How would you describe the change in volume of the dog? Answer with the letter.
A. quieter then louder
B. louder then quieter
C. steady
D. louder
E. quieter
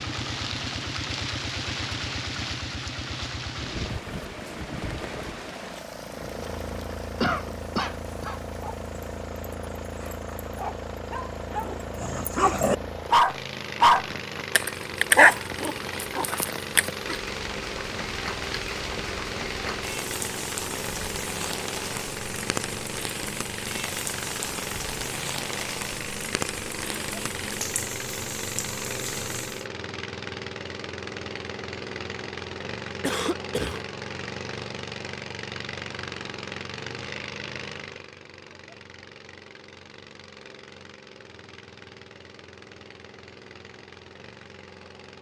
D.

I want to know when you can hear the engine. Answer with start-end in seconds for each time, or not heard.
0.0-45.1.